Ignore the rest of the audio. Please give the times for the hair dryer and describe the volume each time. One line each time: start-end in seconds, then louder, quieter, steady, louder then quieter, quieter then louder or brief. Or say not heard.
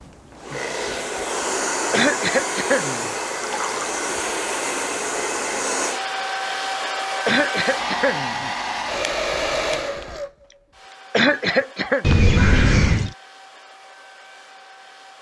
0.0-15.1 quieter.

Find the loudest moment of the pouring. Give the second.
13 s.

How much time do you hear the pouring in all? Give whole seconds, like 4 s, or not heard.
2 s.